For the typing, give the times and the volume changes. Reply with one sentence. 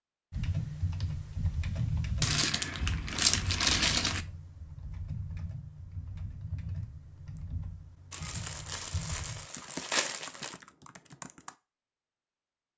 You can hear the typing from 0.3 to 11.6 s, getting quieter.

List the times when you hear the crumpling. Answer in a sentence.
You can hear the crumpling from 2.2 to 4.2 s and from 8.1 to 10.6 s.